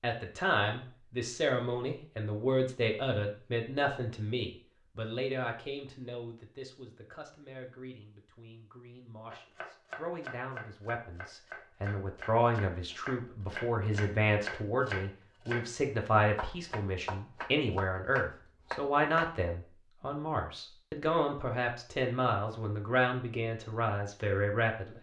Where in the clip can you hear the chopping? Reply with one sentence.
The chopping can be heard from 9.3 to 19.3 s.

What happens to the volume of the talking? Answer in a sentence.
The volume of the talking goes down, then up.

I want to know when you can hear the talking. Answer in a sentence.
The talking can be heard from 0.0 to 24.9 s.